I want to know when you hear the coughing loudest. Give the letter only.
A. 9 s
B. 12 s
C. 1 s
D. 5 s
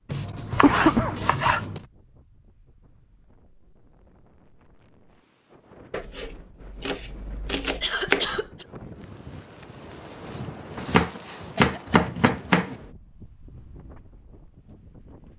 C.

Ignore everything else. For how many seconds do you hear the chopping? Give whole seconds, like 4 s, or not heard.
6 s.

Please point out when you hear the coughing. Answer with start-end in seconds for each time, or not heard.
0.6-1.2, 7.8-8.7, 11.2-12.2.